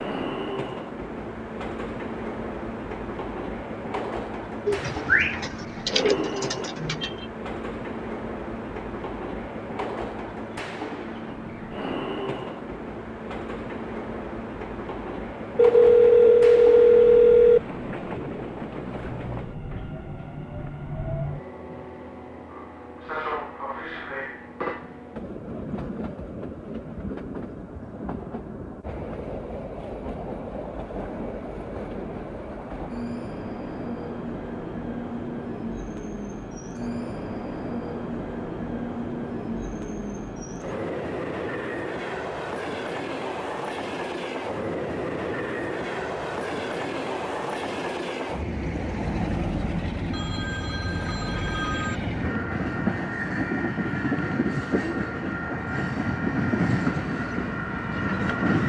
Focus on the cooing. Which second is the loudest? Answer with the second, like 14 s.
5 s.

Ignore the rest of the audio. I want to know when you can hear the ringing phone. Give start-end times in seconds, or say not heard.
15.6-17.6, 50.1-52.0.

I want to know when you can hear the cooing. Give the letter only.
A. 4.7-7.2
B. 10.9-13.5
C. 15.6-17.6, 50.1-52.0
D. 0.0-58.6
A.